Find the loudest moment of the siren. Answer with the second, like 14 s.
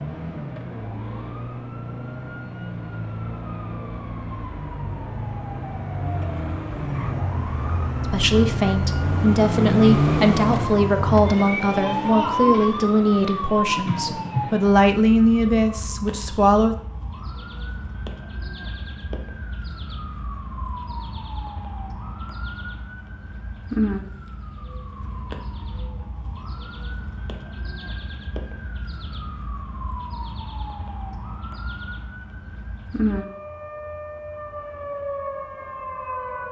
10 s.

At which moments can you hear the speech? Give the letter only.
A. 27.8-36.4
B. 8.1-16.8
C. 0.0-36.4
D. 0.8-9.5
B.